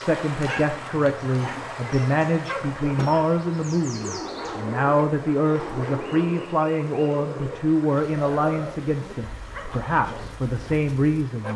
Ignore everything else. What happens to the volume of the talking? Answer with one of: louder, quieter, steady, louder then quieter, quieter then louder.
steady.